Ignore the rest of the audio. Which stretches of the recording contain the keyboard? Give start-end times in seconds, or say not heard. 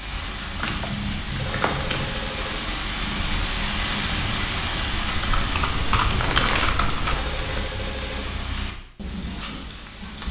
4.9-7.2.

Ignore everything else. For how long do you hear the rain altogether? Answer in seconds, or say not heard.
10 s.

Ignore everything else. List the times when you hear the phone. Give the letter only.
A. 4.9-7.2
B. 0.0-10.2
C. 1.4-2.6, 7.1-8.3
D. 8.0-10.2
C.